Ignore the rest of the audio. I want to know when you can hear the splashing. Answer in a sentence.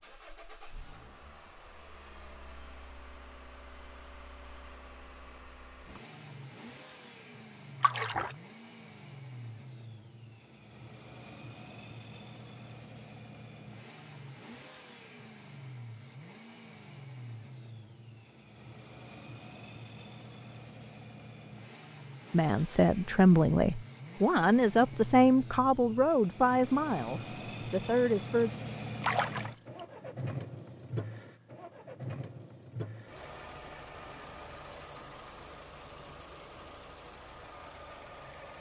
You can hear the splashing from 7.8 to 8.3 s and from 29.0 to 29.8 s.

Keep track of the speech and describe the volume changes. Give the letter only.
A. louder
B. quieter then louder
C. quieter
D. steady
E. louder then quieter
C.